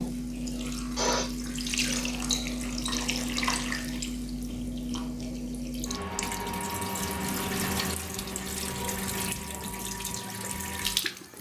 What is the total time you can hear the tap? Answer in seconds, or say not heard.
11 s.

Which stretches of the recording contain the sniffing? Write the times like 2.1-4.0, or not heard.
0.9-2.3.